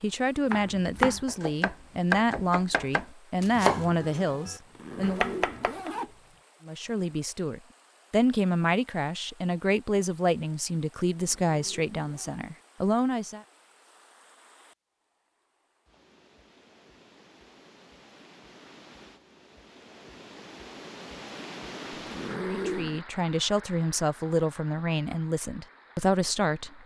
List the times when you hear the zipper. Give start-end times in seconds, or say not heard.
4.6-6.3, 11.1-12.4, 21.9-23.0.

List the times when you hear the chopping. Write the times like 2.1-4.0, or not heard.
0.5-5.9.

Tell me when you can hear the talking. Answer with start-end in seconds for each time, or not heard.
0.0-5.3, 6.7-13.4, 22.4-26.8.